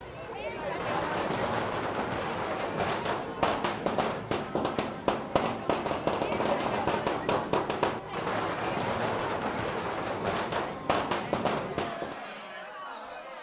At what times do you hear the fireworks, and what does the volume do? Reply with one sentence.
You can hear the fireworks from 0.6 to 12.2 s, at a steady volume.